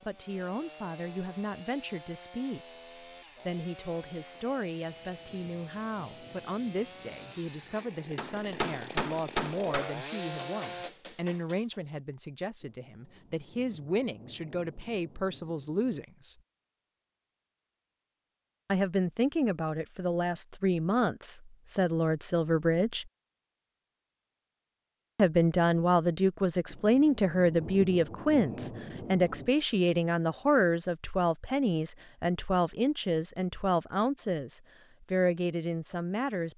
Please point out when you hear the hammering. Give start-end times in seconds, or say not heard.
8.2-11.8.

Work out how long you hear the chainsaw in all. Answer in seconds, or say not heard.
11 s.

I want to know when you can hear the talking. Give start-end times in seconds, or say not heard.
0.0-2.6, 3.5-16.4, 18.6-23.1, 25.1-36.5.